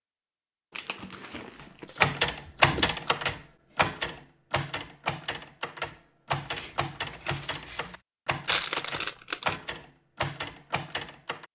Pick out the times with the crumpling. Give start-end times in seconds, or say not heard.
0.7-1.9, 8.4-9.6.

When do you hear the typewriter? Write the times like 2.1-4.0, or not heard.
1.9-11.4.